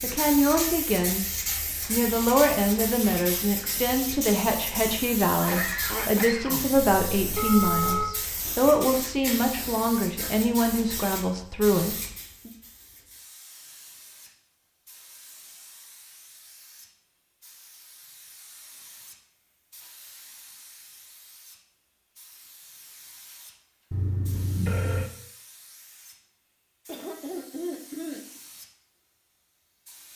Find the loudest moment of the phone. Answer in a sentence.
The volume of the phone peaks at 8 seconds.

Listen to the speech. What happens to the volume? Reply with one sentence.
The volume of the speech stays about the same.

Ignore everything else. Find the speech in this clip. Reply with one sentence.
The speech can be heard from 0.0 to 12.5 s.